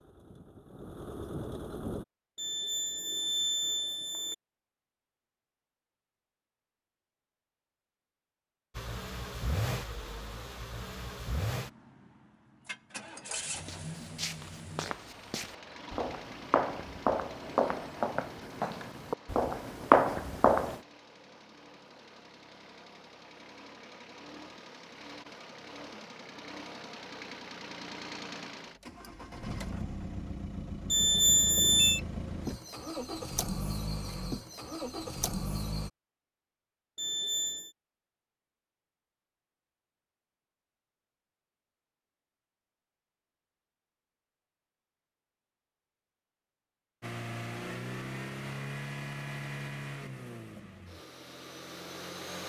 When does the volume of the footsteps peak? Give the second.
20 s.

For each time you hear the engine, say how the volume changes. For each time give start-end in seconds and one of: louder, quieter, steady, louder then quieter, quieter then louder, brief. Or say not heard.
0.0-2.0 brief
8.8-35.9 quieter then louder
47.0-52.4 quieter.